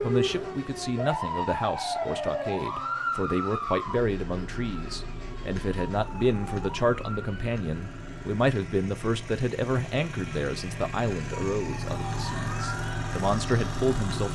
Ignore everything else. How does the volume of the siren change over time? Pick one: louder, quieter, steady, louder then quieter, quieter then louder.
quieter then louder.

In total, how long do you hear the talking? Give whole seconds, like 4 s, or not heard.
14 s.